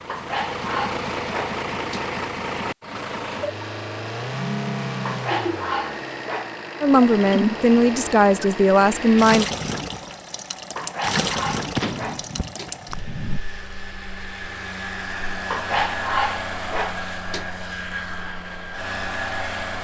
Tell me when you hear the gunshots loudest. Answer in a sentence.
The loudest moment of the gunshots is at 12 seconds.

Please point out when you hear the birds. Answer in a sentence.
The birds can't be heard in this clip.